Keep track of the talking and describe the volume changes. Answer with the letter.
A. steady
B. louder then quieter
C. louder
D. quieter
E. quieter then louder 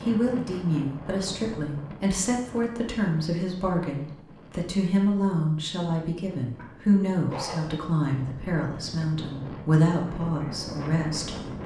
A.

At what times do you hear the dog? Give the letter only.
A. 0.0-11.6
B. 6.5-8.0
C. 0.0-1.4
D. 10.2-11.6
B.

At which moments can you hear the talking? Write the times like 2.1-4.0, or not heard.
0.0-11.6.